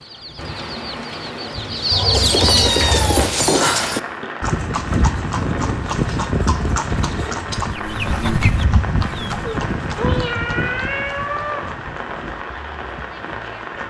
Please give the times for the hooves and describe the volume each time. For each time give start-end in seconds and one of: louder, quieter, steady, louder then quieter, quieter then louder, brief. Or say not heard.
2.1-13.8 quieter.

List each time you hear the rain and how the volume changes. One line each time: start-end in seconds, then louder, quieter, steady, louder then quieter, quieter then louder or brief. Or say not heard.
0.0-13.8 steady.